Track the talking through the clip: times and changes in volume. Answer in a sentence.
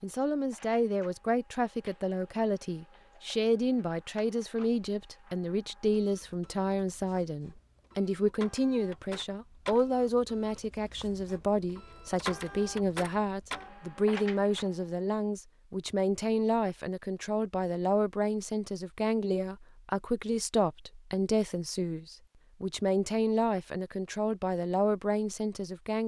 The talking can be heard from 0.0 to 26.0 s, at a steady volume.